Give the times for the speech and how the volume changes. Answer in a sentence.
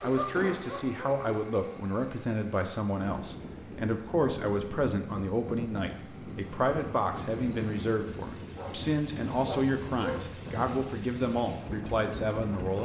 You can hear the speech from 0.0 to 12.7 s, at a steady volume.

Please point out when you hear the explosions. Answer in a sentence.
You can hear the explosions from 0.3 to 0.8 s.